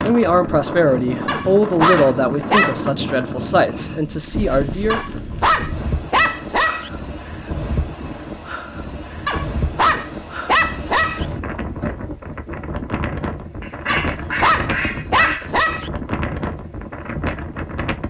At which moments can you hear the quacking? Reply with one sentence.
You can hear the quacking from 13.6 to 15.6 s.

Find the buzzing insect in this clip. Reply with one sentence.
You can't hear the buzzing insect here.